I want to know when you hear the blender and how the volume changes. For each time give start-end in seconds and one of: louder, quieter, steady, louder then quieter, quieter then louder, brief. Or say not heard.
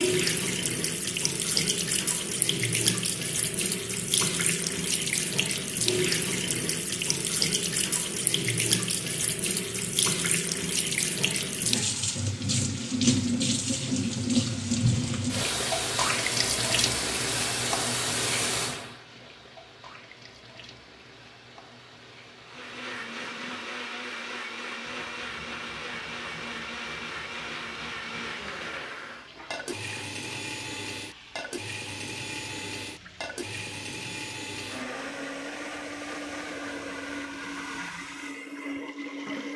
22.4-39.5 steady.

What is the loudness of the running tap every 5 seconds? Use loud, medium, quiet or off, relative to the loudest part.
loud, loud, loud, loud, quiet, quiet, quiet, quiet.